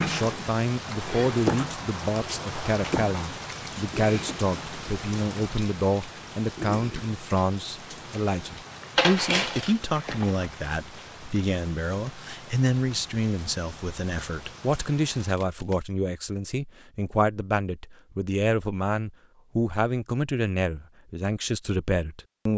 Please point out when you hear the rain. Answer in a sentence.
The rain can be heard from 0.0 to 15.3 s.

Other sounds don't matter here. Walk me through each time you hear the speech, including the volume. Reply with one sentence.
You can hear the speech from 0.0 to 22.5 s, at a steady volume.